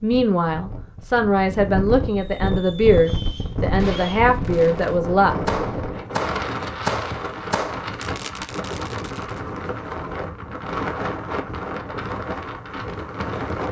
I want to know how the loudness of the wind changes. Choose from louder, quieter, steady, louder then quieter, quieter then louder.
steady.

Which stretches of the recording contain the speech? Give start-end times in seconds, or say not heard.
0.0-5.3.